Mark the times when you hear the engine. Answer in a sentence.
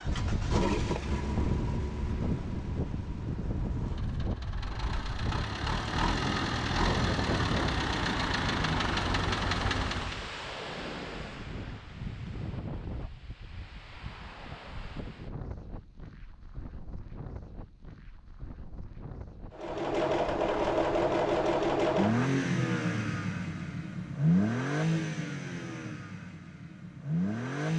The engine can be heard from 0.0 to 10.3 s and from 19.5 to 27.7 s.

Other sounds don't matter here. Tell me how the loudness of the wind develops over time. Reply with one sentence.
The volume of the wind goes down.